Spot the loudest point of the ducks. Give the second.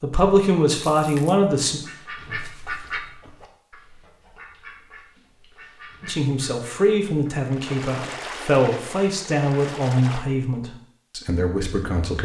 3 s.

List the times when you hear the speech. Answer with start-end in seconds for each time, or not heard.
0.0-1.8, 6.0-12.2.